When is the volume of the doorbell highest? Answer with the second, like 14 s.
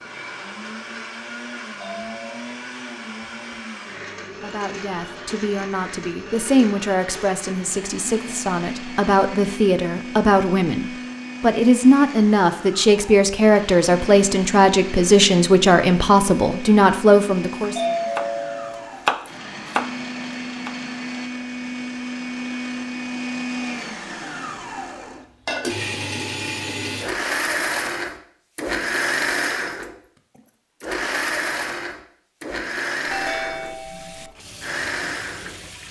18 s.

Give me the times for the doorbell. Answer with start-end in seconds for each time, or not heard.
1.8-2.5, 17.8-18.9, 33.0-34.3.